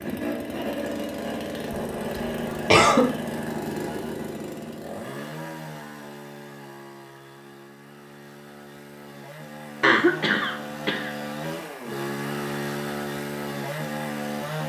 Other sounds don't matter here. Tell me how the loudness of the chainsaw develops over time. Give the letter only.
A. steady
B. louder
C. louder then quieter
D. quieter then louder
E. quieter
D.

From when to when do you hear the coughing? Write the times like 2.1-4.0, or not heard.
1.7-3.0, 9.8-11.1.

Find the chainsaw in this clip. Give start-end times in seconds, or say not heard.
0.0-14.6.